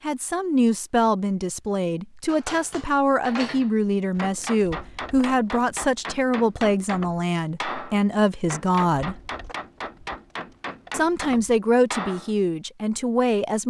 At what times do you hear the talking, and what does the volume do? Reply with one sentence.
The talking can be heard from 0.0 to 9.2 s, at a steady volume; and briefly from 10.9 to 13.6 s.